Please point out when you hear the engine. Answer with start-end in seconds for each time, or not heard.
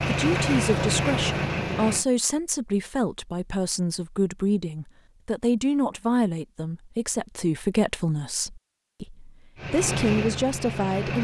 0.0-2.0, 9.6-11.1.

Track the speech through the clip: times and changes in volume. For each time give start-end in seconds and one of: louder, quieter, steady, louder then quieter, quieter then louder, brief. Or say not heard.
0.1-11.1 steady.